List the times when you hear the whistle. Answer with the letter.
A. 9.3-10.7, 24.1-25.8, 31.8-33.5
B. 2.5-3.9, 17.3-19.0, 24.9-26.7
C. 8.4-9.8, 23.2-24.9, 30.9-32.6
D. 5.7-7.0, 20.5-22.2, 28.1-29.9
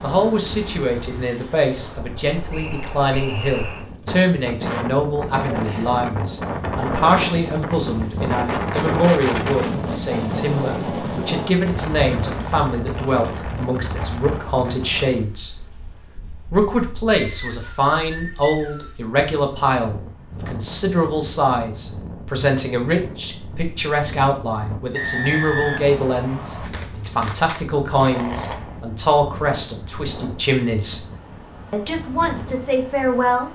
B.